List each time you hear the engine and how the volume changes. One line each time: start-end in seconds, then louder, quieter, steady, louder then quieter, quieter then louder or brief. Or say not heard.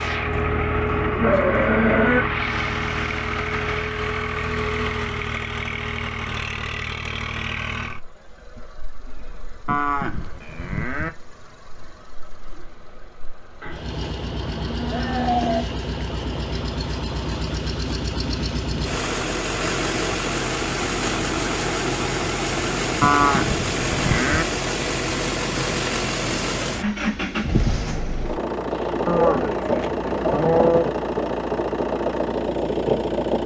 0.0-33.4 quieter then louder.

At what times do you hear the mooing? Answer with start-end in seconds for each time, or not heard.
0.3-2.2, 9.7-11.1, 13.6-15.7, 23.0-24.4, 29.1-30.9.